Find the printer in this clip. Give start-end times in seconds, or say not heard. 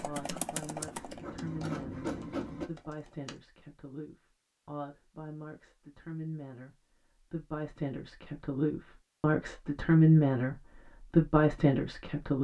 0.1-2.7.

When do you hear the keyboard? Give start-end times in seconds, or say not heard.
0.0-3.4.